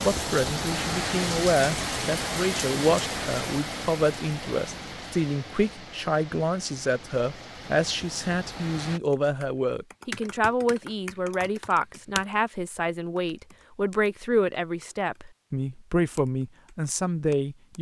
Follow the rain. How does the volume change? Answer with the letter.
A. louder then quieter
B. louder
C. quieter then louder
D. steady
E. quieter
E.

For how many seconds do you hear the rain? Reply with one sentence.
You can hear the rain for 9 seconds altogether.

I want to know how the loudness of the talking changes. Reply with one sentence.
The volume of the talking stays about the same.